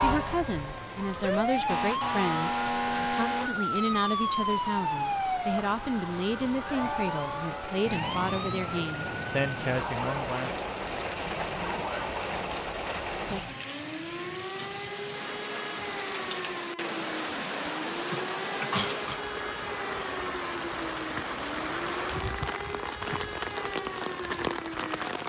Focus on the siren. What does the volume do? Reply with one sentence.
The loudness of the siren goes down.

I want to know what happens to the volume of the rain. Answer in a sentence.
The loudness of the rain goes up.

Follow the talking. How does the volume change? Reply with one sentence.
The loudness of the talking stays about the same.